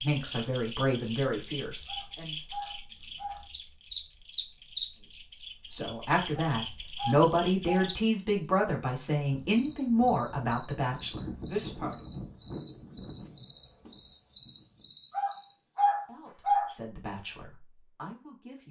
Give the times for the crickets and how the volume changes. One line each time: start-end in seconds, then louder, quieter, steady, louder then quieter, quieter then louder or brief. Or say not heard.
0.0-15.8 louder.